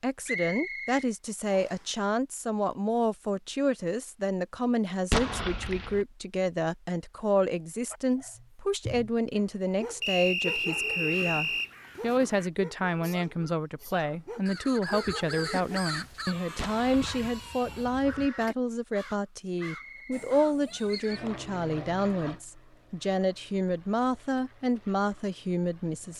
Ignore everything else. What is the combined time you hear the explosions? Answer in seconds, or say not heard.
2 s.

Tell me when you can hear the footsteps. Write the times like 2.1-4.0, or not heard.
not heard.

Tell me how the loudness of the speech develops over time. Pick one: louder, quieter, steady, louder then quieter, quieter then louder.
steady.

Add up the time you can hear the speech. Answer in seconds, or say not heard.
26 s.